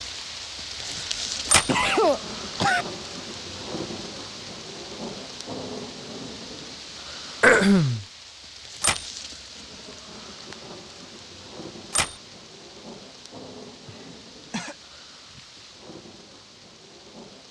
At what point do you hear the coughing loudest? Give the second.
8 s.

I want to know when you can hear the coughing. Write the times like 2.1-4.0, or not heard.
0.8-2.9, 7.4-8.1, 13.8-14.8.